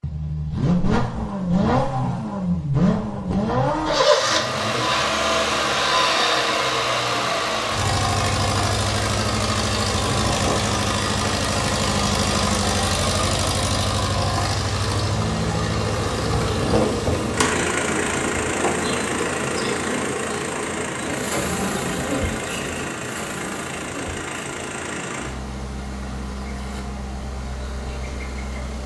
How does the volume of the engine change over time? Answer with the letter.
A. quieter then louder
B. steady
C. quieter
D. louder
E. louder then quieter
C.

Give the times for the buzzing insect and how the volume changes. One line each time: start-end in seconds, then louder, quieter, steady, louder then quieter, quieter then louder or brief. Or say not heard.
15.8-28.8 quieter.